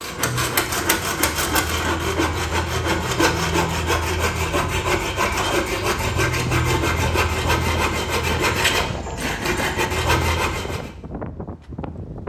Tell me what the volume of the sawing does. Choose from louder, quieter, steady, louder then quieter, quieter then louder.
steady.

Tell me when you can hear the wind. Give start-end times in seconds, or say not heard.
5.8-12.2.